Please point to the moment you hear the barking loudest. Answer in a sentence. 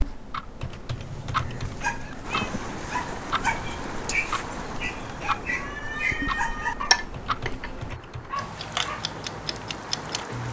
The volume of the barking peaks at 7 seconds.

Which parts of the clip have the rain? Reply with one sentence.
The rain can be heard from 2.2 to 10.4 s.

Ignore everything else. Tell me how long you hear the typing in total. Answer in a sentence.
The typing can be heard for 3 seconds in total.